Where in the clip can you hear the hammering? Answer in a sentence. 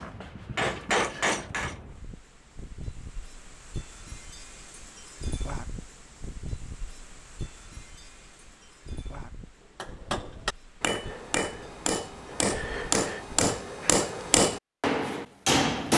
You can hear the hammering from 0.0 to 1.8 s and from 9.8 to 15.9 s.